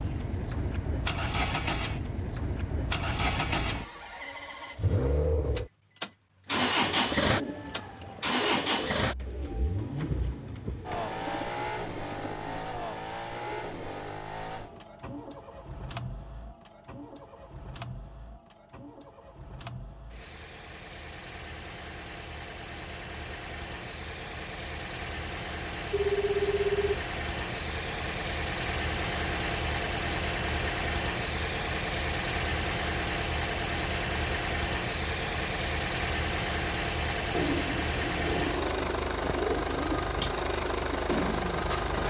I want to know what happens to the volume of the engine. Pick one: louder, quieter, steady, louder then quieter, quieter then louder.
quieter then louder.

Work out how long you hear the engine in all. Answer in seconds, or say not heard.
42 s.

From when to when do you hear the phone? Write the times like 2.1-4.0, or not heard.
25.9-27.0.